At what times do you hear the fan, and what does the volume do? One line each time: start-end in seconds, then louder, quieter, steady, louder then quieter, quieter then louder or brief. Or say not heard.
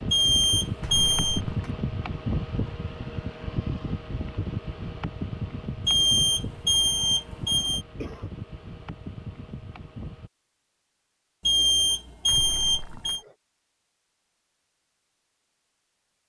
0.0-10.3 quieter.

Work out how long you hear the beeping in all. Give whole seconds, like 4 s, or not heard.
5 s.